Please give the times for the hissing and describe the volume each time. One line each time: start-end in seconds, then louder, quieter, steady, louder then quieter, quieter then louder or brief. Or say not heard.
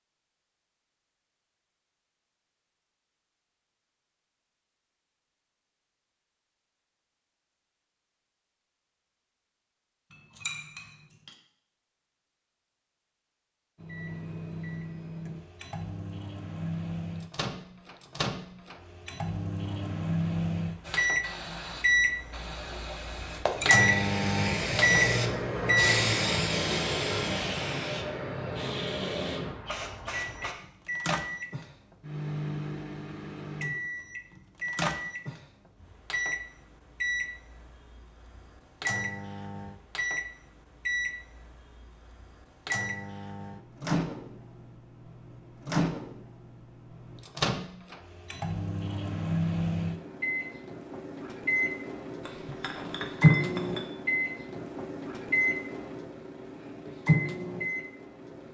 20.8-30.6 louder then quieter.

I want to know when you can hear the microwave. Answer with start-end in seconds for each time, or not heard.
13.8-26.0, 30.1-58.4.